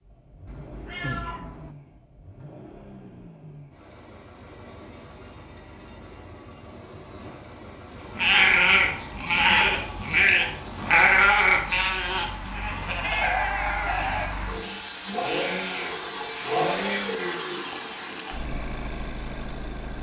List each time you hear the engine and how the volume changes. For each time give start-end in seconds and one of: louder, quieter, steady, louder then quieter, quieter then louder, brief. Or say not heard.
0.0-19.9 louder.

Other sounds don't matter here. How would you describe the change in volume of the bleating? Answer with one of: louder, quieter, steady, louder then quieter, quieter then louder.
quieter.